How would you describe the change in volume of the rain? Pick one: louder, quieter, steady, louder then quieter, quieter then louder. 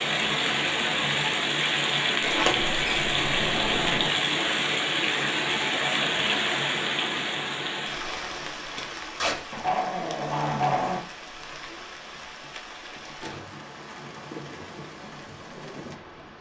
quieter.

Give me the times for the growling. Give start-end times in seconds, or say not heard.
9.2-11.0.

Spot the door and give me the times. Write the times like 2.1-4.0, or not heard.
2.2-4.1.